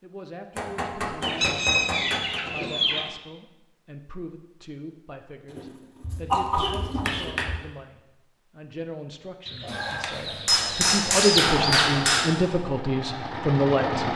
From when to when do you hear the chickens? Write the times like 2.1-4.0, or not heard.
1.2-3.1, 5.5-7.3, 9.4-11.8.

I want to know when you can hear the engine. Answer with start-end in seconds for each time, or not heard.
11.2-14.1.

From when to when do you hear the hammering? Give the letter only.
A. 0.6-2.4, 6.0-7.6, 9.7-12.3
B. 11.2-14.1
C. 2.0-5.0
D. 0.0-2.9
A.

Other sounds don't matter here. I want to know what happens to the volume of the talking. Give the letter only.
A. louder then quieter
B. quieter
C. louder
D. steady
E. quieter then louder
C.